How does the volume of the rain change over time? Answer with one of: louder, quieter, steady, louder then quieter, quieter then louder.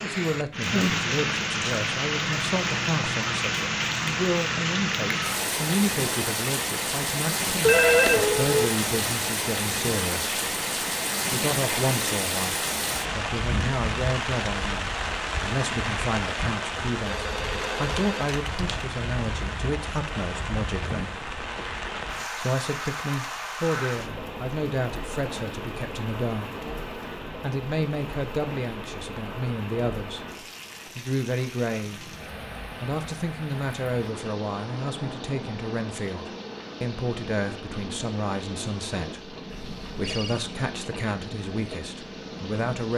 quieter.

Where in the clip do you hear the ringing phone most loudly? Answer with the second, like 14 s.
8 s.